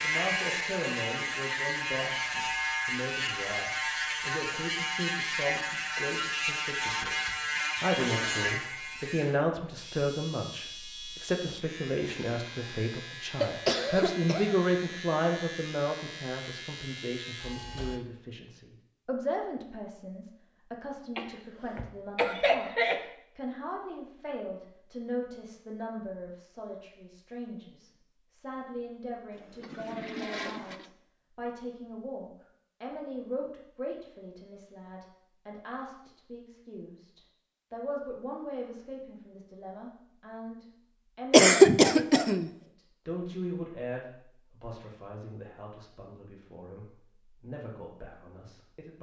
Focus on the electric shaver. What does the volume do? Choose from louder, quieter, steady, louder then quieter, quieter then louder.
quieter.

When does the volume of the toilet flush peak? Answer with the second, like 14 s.
30 s.